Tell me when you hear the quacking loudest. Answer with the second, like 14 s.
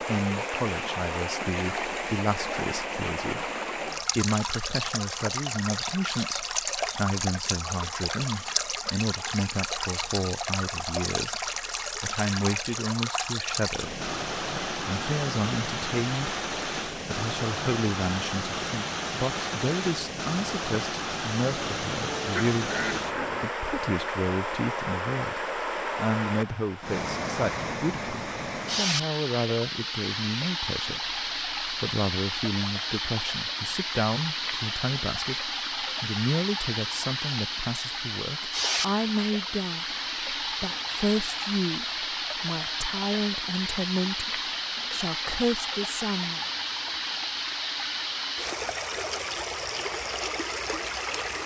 23 s.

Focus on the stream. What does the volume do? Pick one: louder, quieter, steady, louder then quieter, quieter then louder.
steady.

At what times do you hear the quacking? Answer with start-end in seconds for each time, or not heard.
21.4-23.5.